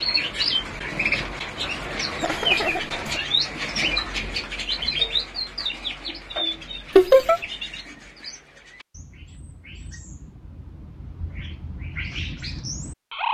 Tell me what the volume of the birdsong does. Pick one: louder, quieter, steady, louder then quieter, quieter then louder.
quieter then louder.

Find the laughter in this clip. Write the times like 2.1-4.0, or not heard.
2.2-3.2, 7.0-7.4.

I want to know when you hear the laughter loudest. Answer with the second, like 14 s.
7 s.